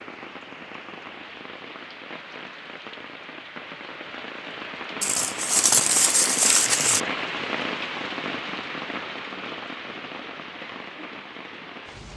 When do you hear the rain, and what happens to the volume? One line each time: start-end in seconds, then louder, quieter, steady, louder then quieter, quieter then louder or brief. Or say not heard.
0.0-12.1 louder then quieter.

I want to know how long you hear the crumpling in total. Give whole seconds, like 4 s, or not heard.
2 s.